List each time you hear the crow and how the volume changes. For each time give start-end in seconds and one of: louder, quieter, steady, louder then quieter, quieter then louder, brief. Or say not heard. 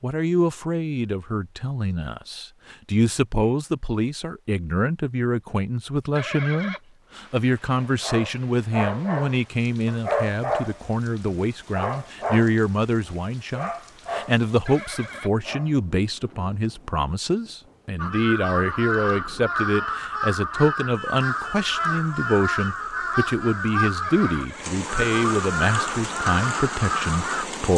17.9-27.4 steady.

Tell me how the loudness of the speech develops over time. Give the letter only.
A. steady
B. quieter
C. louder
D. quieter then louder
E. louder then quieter
A.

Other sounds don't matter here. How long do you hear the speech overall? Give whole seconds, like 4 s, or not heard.
28 s.